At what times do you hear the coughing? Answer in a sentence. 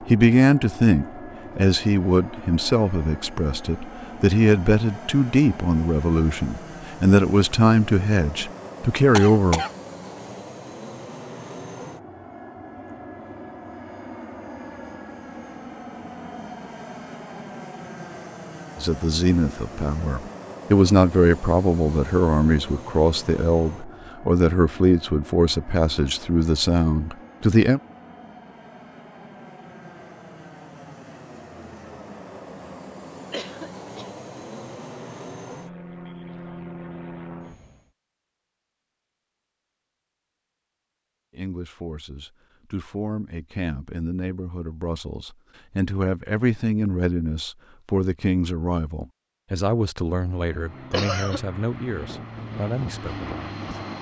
The coughing can be heard from 9.2 to 9.7 s, from 33.3 to 34.1 s and from 50.9 to 51.4 s.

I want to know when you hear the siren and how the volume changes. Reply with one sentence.
The siren can't be heard in this clip.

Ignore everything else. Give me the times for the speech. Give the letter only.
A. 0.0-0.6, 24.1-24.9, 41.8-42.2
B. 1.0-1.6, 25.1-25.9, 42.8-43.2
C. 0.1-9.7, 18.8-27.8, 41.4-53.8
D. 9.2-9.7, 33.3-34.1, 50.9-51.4
C.